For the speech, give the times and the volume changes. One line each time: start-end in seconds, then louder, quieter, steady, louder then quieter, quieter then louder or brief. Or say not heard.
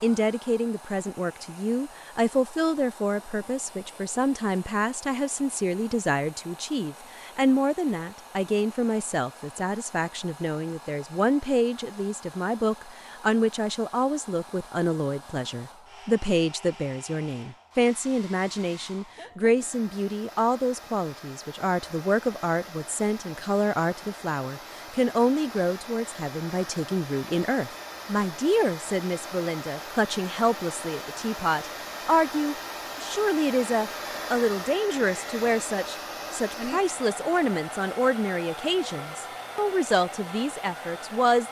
0.0-41.4 steady.